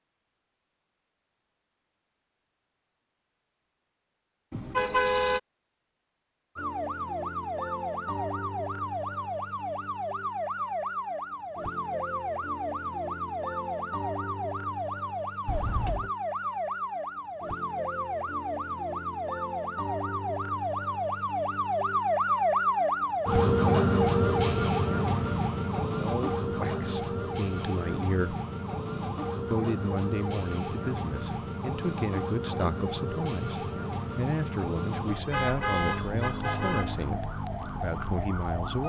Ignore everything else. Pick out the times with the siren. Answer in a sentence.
You can hear the siren from 6.5 to 38.8 s.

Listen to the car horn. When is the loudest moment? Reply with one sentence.
The loudest moment of the car horn is at 5 seconds.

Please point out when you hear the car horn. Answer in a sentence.
You can hear the car horn from 4.5 to 5.4 s, from 15.4 to 16.1 s and from 35.3 to 37.0 s.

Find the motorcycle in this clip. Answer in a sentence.
The motorcycle can't be heard in this clip.